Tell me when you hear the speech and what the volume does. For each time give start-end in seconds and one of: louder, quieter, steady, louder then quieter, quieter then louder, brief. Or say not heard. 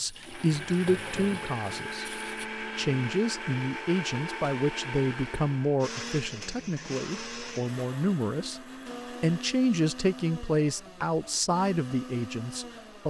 0.0-13.0 steady.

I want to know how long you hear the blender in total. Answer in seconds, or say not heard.
13 s.